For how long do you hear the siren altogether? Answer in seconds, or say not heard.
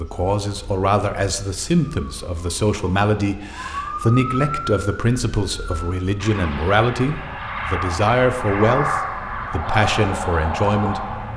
11 s.